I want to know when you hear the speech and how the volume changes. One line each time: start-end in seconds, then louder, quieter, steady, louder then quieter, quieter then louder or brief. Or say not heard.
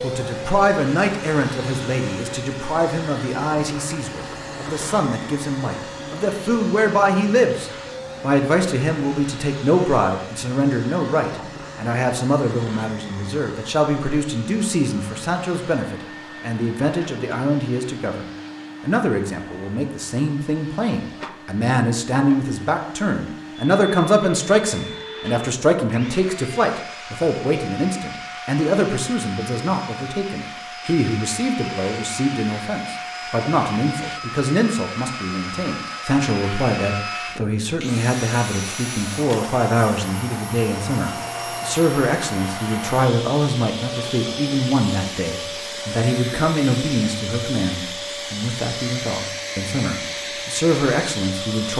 0.0-51.7 steady.